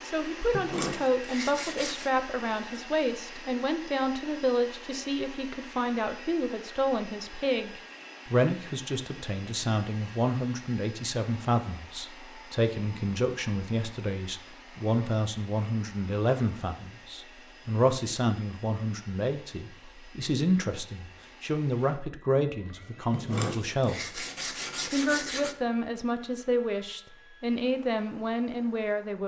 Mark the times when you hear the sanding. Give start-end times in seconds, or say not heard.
0.5-2.1, 23.1-25.6.